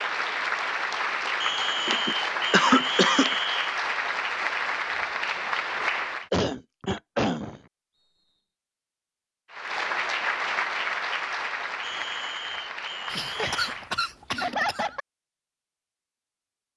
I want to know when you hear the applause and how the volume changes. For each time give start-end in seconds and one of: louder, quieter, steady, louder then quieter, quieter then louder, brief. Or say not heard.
0.0-6.3 steady
9.5-13.9 quieter.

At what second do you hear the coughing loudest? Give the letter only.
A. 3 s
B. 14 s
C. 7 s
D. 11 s
A.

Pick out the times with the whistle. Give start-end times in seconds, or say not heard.
1.4-3.8, 6.8-8.4, 11.8-13.8.